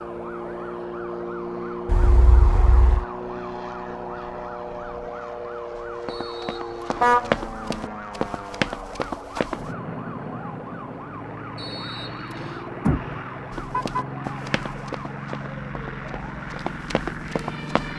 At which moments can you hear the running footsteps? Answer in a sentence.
The running footsteps can be heard from 5.8 to 9.7 s and from 13.5 to 17.9 s.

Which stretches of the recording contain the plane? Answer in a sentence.
The plane can be heard from 0.0 to 17.9 s.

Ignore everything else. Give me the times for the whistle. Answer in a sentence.
The whistle can be heard from 6.0 to 7.0 s and from 11.6 to 12.7 s.